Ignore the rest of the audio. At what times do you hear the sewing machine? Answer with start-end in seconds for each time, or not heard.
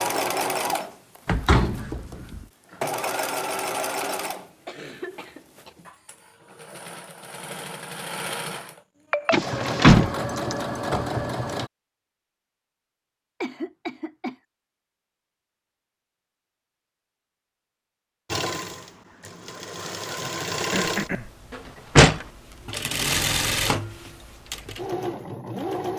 0.0-11.7, 18.3-25.9.